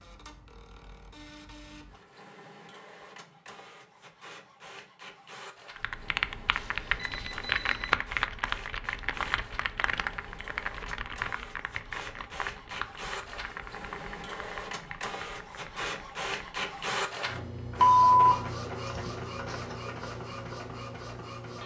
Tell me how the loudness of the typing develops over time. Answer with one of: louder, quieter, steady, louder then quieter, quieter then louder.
quieter.